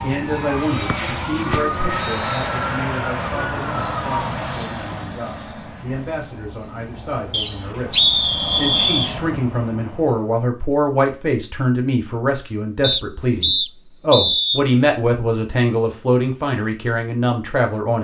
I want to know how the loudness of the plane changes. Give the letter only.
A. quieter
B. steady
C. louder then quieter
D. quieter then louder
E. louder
D.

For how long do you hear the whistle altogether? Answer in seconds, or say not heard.
5 s.